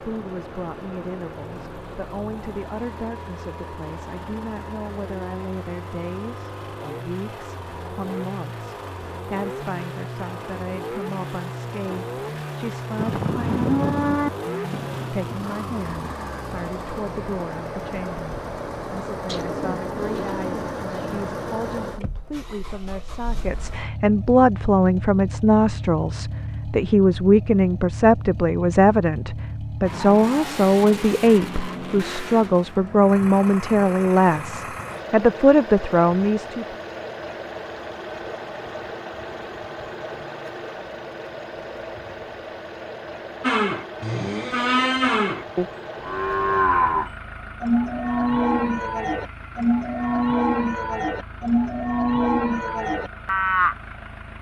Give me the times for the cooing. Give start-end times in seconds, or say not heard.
19.2-21.2.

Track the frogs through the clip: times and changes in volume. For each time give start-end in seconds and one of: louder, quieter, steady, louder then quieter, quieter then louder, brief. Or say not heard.
not heard.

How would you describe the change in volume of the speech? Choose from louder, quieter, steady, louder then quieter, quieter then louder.
louder.